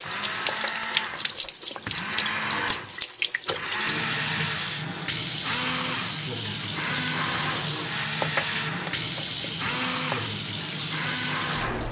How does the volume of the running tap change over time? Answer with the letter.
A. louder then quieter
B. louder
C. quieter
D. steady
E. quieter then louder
D.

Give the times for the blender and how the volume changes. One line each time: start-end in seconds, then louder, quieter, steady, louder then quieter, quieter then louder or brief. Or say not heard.
0.0-11.8 steady.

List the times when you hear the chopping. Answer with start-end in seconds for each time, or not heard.
0.4-1.9, 8.2-10.2.